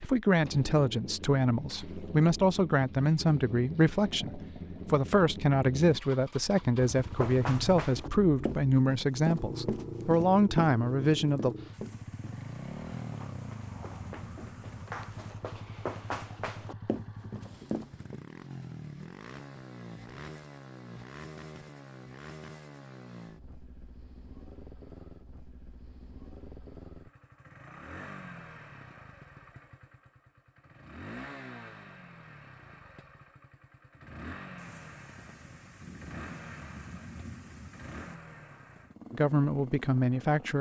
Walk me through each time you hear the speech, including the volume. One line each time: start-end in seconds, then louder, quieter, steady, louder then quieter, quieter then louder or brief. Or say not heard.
0.0-11.6 steady
39.1-40.5 brief.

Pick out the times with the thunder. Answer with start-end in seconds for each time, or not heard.
11.7-15.3, 34.5-38.1.